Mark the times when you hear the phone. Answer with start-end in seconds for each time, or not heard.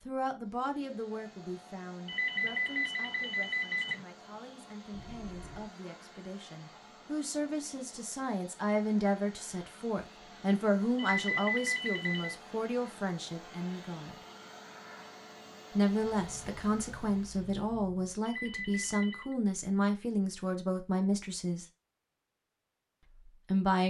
2.0-4.0, 10.9-12.3, 18.2-19.4.